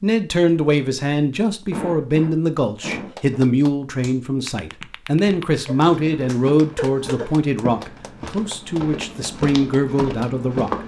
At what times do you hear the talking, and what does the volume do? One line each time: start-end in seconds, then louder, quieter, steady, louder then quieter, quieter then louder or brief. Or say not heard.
0.0-10.8 steady.